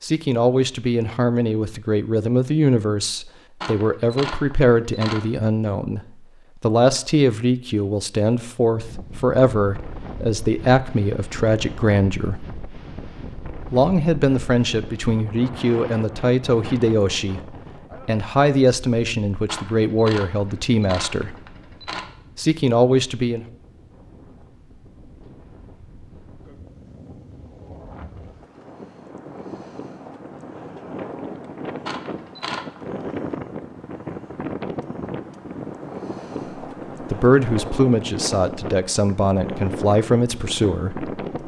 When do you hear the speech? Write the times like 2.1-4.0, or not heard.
0.0-6.0, 6.6-12.4, 13.7-21.4, 22.4-23.4, 37.0-41.1.